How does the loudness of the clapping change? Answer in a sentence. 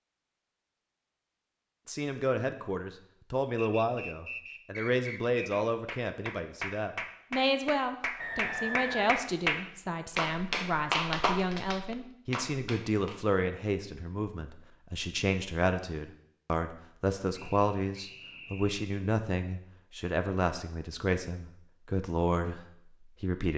The volume of the clapping goes up, then down.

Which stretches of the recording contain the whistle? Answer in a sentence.
The whistle can be heard from 3.5 to 5.7 s, from 8.2 to 9.2 s and from 17.3 to 18.8 s.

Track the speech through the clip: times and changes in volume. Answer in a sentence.
The speech can be heard from 1.9 to 23.5 s, at a steady volume.